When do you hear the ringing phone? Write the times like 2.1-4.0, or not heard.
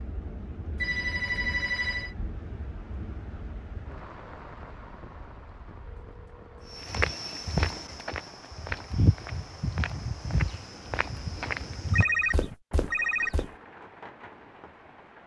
0.8-2.1, 5.8-7.0, 11.9-13.6.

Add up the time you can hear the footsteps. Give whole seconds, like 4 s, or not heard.
7 s.